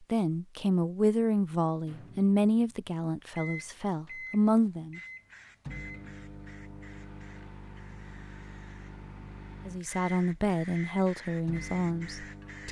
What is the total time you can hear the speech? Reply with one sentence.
You can hear the speech for 8 seconds altogether.